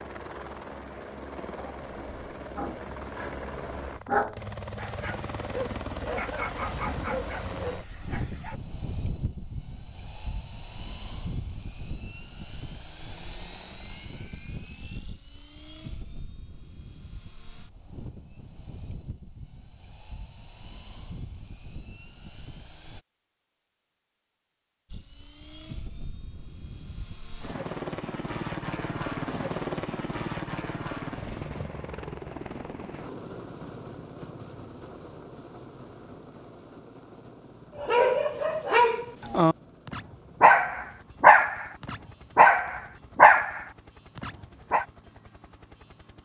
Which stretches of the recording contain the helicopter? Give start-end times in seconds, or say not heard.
0.0-23.1, 24.9-46.2.